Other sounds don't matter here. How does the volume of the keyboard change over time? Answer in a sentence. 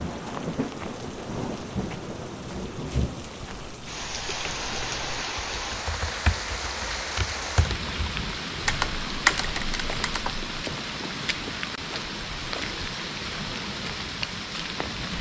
The loudness of the keyboard goes up.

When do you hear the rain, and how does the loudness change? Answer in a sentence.
You can hear the rain from 0.0 to 15.1 s, at a steady volume.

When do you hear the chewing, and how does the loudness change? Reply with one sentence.
The chewing can't be heard in this clip.